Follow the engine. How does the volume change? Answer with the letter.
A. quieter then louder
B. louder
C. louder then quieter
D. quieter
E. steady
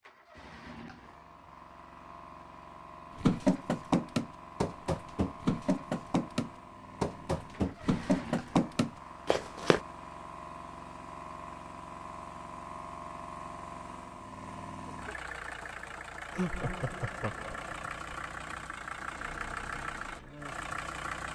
B.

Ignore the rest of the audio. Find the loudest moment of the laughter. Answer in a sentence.
The volume of the laughter peaks at 17 seconds.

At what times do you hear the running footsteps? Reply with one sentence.
The running footsteps can be heard from 3.1 to 9.8 s.